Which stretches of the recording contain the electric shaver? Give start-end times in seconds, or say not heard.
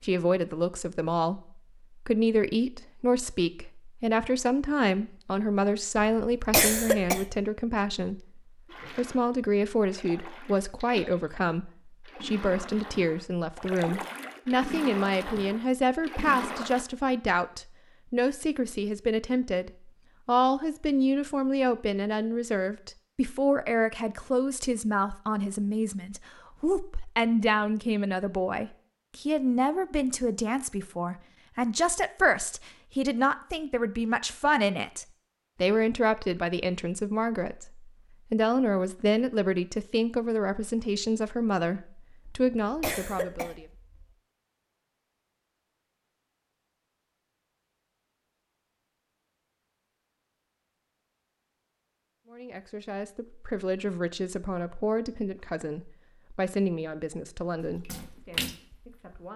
not heard.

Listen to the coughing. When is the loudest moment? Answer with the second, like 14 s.
7 s.